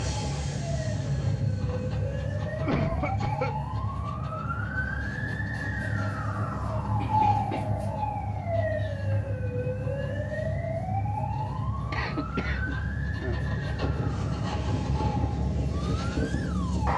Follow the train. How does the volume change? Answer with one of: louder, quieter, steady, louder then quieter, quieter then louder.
quieter then louder.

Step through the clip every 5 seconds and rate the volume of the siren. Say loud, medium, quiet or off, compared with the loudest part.
medium, loud, medium, medium.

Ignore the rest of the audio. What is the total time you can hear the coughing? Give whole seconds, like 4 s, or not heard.
3 s.